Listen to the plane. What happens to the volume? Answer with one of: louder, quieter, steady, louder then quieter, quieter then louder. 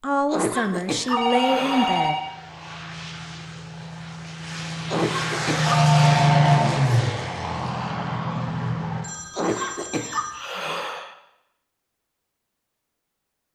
louder then quieter.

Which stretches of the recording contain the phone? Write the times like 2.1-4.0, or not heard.
1.1-2.2, 5.7-6.6, 9.0-10.4.